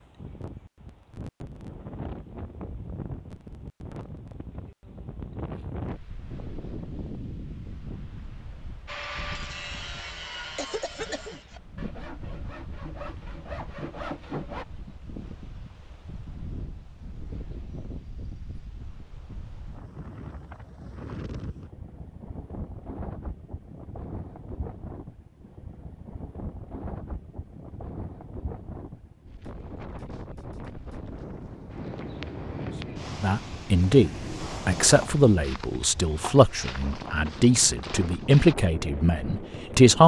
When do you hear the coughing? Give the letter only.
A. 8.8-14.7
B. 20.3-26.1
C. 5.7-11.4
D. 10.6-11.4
D.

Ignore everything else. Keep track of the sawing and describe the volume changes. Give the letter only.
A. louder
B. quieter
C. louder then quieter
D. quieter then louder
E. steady
D.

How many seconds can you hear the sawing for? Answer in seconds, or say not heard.
6 s.